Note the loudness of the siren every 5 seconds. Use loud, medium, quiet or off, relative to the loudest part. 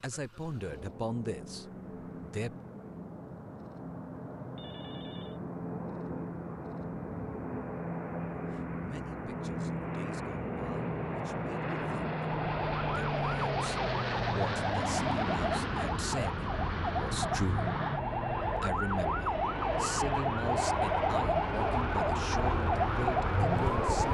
off, off, medium, loud, loud.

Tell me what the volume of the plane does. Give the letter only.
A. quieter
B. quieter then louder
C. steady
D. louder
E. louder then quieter
D.